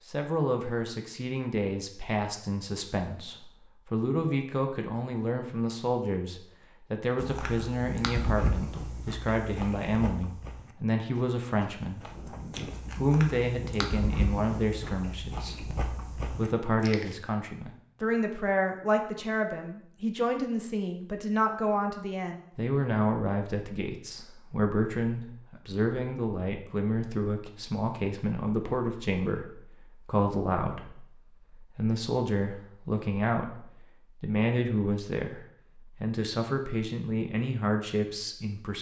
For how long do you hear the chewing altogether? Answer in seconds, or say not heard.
10 s.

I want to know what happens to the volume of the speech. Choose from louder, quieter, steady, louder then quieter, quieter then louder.
steady.